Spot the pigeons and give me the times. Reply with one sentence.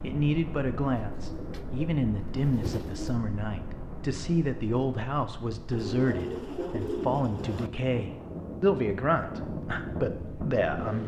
You can hear the pigeons from 0.9 to 3.2 s and from 5.7 to 7.7 s.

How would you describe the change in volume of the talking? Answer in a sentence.
The loudness of the talking stays about the same.